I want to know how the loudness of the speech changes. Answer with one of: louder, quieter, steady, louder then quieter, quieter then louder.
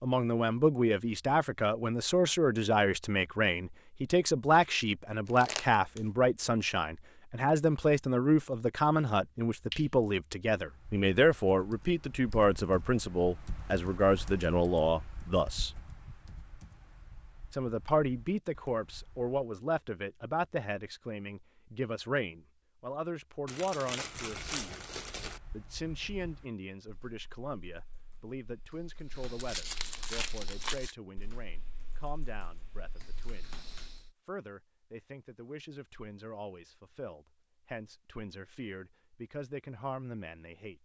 quieter.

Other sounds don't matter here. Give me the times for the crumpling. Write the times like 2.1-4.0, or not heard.
5.2-6.0, 23.4-25.4, 29.4-30.9.